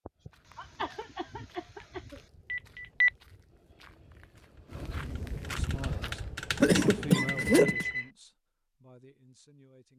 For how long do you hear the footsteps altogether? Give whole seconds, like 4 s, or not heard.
6 s.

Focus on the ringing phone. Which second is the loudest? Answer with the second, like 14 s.
3 s.